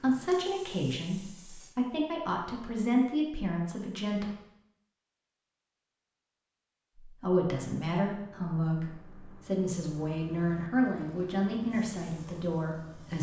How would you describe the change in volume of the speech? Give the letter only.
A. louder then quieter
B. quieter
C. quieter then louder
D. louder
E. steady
E.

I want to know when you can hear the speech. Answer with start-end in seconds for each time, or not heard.
0.0-4.2, 7.0-13.1.